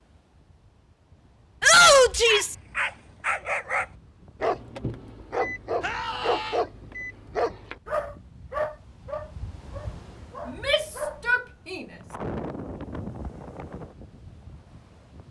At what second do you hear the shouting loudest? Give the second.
2 s.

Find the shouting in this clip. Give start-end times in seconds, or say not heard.
1.6-2.5, 5.8-6.6, 10.4-11.8.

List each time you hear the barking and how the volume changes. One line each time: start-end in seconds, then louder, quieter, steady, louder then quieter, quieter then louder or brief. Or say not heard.
2.2-11.3 quieter.